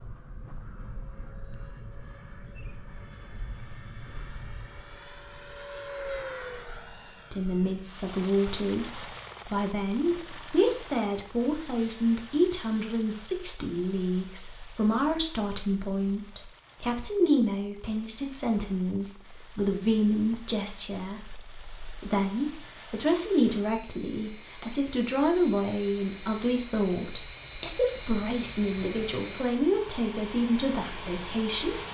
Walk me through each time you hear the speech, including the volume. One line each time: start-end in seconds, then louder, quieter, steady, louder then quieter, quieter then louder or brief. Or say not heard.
7.3-31.8 steady.